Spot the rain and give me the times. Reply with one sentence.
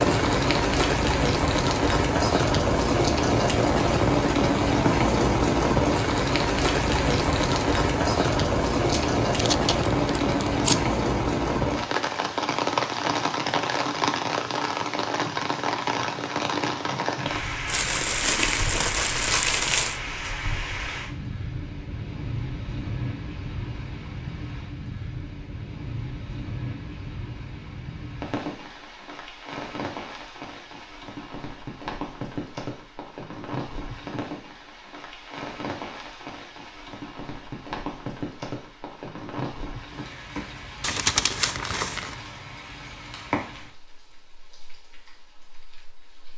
You can hear the rain from 0.0 to 46.3 s.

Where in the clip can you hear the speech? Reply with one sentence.
The speech can't be heard in this clip.